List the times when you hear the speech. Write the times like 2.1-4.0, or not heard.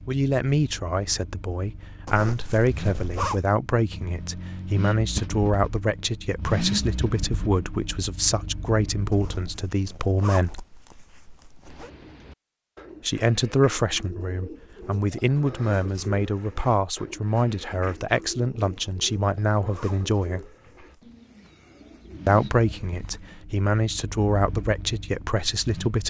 0.1-10.7, 13.0-20.4, 22.2-26.0.